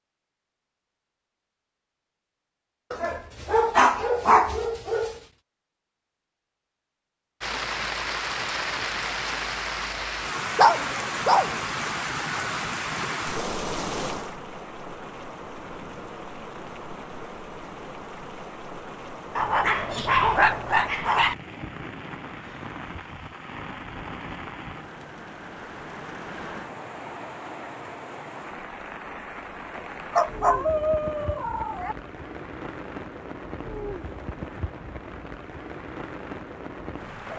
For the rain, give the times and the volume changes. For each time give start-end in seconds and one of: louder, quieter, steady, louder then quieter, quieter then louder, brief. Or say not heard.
7.4-37.3 quieter.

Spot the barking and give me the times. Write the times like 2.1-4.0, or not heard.
2.9-5.2, 10.6-11.6, 19.4-21.4, 30.1-31.9.